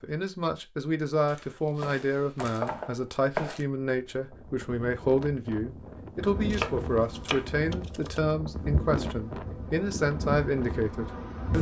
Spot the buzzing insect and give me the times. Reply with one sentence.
The buzzing insect can be heard from 6.2 to 11.5 s.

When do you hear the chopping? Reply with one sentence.
You can hear the chopping from 1.2 to 3.6 s and from 6.5 to 8.2 s.